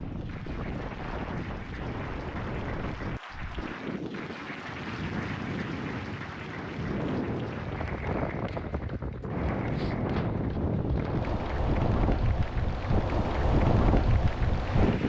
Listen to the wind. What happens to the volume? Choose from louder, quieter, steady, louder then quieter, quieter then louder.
louder.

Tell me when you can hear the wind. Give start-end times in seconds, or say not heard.
0.0-15.0.